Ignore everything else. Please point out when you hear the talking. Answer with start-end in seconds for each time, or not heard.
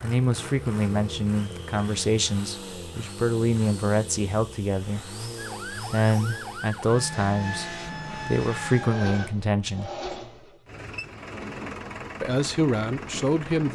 0.0-9.9, 12.2-13.7.